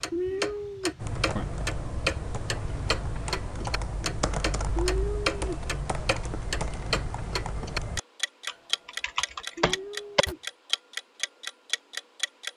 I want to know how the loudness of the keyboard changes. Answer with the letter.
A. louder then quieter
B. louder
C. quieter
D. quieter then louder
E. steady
E.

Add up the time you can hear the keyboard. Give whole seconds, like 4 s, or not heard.
9 s.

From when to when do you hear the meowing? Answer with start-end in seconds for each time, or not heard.
0.1-1.4, 4.8-5.3, 9.6-10.4.